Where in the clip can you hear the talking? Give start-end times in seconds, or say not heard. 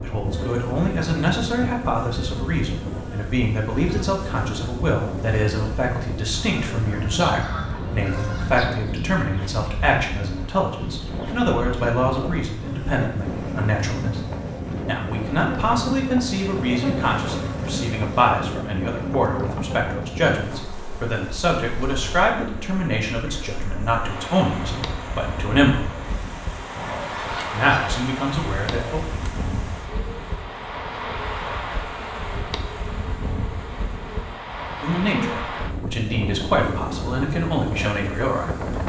0.0-14.2, 14.8-25.9, 27.5-29.0, 34.8-38.6.